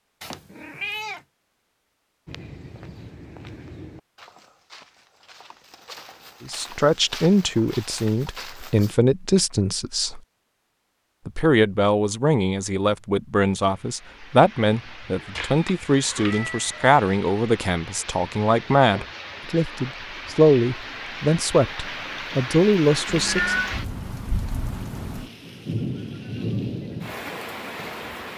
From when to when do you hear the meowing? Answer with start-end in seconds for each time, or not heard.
0.2-1.2, 15.3-16.9, 23.1-23.8.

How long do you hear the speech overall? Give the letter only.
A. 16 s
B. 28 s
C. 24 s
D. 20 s
A.